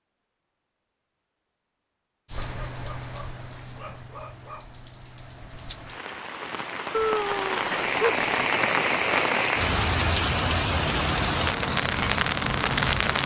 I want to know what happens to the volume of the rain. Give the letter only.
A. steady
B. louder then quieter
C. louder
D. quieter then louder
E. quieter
C.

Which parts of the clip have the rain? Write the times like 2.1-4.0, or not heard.
2.2-13.2.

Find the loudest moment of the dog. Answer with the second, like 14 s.
7 s.